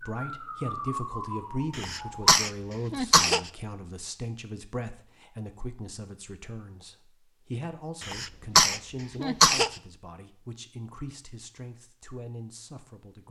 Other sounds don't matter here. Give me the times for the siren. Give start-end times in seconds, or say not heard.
0.0-2.4.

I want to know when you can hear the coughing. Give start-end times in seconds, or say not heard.
1.8-3.4, 8.0-9.7.